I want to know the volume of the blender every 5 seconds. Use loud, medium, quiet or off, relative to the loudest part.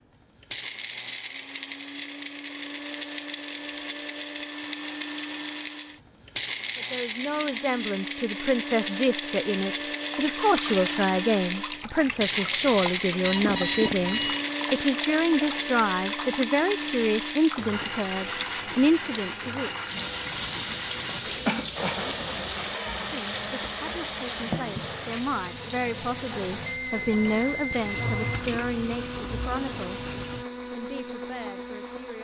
medium, loud, loud, loud, medium, medium, medium.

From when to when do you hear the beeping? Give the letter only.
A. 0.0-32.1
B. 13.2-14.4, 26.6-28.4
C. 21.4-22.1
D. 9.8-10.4
B.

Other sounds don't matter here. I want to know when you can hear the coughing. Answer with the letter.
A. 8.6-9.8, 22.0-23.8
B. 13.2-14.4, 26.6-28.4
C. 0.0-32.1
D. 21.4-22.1
D.